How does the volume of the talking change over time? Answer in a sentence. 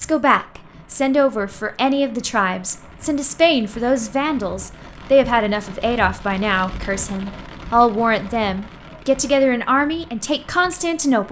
The volume of the talking stays about the same.